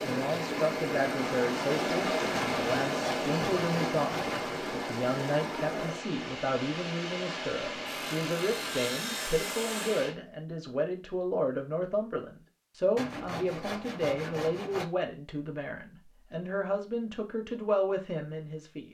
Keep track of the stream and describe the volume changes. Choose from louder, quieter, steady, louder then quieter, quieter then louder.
quieter.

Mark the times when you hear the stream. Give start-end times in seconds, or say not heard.
0.0-10.2.